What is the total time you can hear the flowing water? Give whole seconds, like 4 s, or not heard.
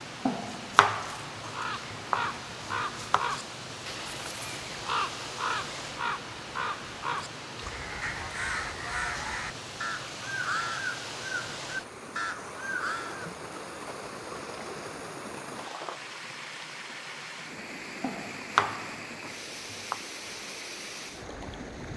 22 s.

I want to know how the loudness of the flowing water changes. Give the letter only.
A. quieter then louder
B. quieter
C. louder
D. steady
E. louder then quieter
D.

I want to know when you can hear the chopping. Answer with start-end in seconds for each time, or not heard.
0.2-3.2, 18.0-20.0.